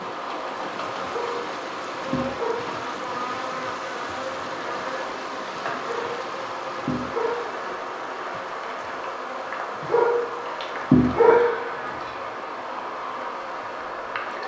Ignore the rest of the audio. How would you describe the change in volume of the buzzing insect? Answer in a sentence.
The volume of the buzzing insect stays about the same.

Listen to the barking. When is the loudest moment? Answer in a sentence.
The loudest moment of the barking is at 11 seconds.